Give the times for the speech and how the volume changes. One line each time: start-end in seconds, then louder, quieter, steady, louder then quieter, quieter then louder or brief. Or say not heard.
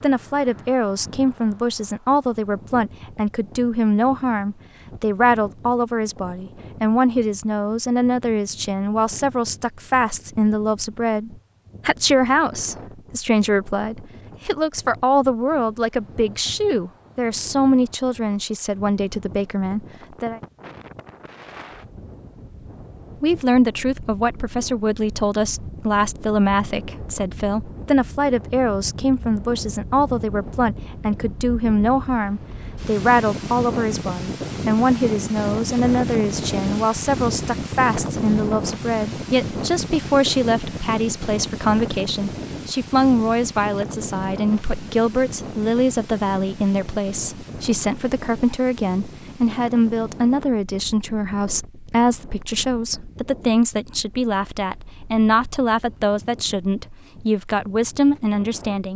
0.0-20.4 steady
23.2-58.9 steady.